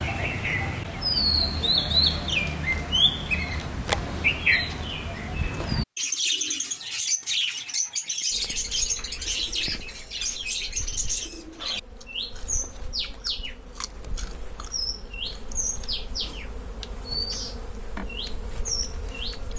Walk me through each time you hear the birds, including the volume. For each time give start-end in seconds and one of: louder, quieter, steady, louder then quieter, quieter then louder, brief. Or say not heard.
0.0-19.5 quieter.